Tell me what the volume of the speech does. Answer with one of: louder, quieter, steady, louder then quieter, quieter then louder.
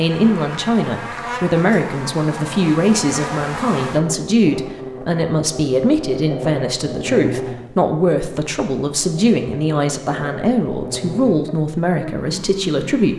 steady.